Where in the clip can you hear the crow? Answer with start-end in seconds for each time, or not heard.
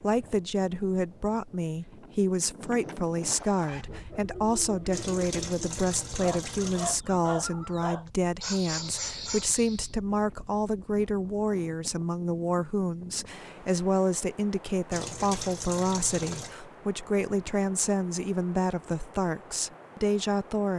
not heard.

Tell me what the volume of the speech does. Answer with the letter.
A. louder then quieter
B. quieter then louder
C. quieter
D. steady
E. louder
D.